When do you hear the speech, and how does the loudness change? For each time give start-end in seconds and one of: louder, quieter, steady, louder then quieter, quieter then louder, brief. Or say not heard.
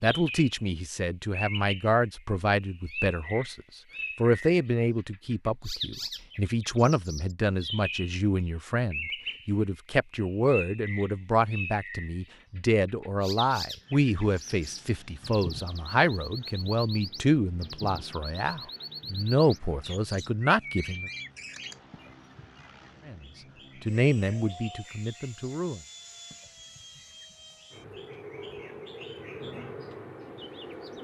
0.0-21.1 steady
23.0-25.9 brief.